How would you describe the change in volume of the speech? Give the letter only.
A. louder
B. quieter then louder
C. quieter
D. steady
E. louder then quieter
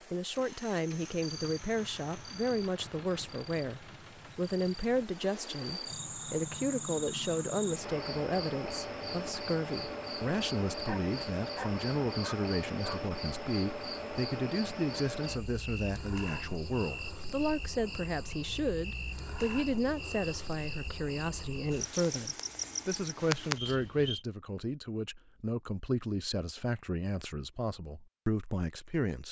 D.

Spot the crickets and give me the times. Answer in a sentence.
You can hear the crickets from 0.0 to 24.2 s.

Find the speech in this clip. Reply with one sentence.
The speech can be heard from 0.1 to 29.2 s.